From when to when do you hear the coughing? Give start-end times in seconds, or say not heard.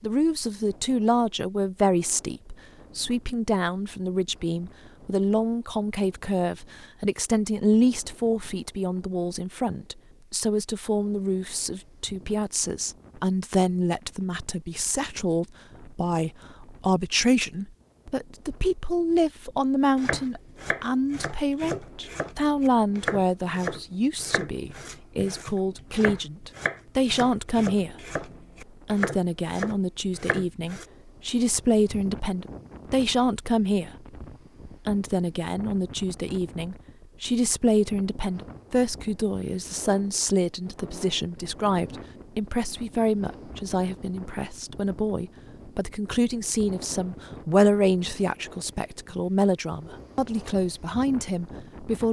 not heard.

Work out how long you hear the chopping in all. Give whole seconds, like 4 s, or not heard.
11 s.